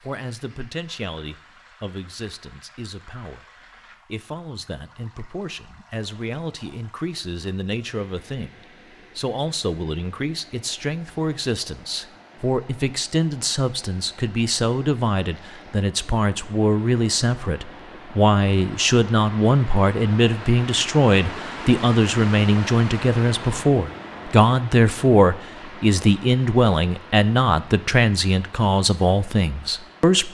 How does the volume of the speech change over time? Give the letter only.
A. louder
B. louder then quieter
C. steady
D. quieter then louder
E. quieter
A.